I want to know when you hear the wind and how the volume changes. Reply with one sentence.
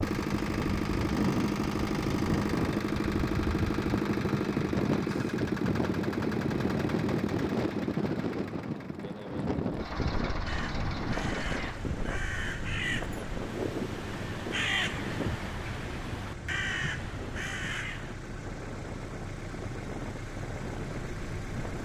You can hear the wind from 0.0 to 21.8 s, getting quieter.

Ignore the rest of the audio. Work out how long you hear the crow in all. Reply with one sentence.
The crow can be heard for 8 seconds in total.